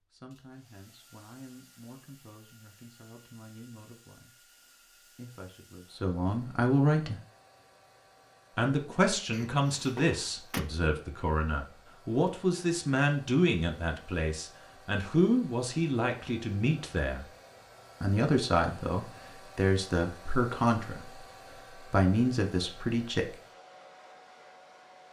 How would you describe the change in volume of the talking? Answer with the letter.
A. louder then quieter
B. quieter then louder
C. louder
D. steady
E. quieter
C.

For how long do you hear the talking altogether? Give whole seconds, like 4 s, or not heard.
21 s.